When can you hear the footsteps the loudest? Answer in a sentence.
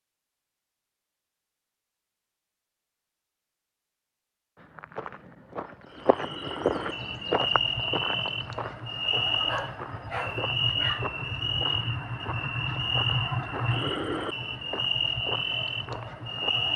The loudest moment of the footsteps is at 7 seconds.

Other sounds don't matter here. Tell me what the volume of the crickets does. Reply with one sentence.
The volume of the crickets stays about the same.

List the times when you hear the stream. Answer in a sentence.
The stream can't be heard in this clip.